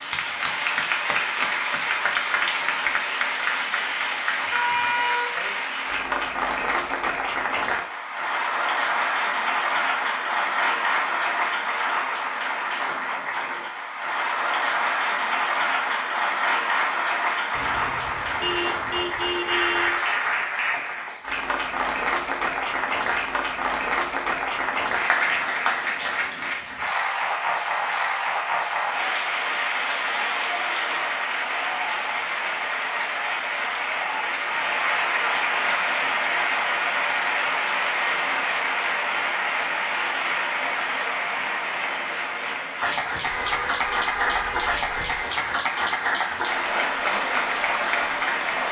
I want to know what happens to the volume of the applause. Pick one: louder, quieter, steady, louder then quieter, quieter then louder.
steady.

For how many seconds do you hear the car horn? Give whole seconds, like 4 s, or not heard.
6 s.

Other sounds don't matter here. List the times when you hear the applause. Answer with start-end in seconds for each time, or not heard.
0.0-48.6.